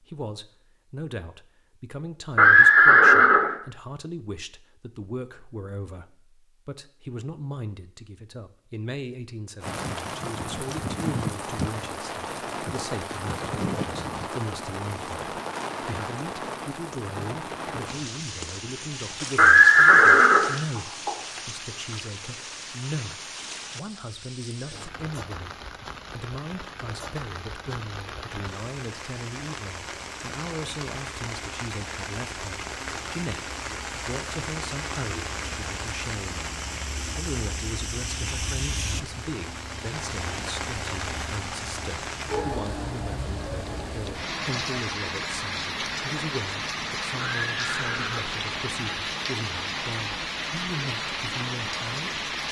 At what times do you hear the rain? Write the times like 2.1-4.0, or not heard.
9.6-52.4.